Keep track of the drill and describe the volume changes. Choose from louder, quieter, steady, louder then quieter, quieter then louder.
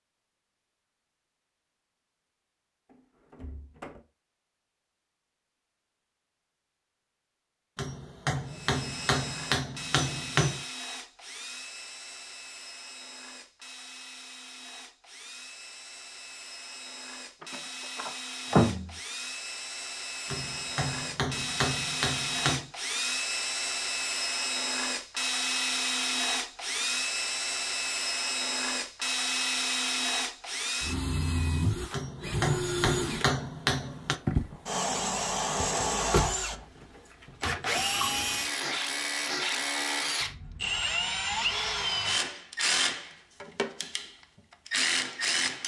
louder.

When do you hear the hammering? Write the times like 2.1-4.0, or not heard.
7.8-10.6, 20.3-22.7, 31.9-34.2.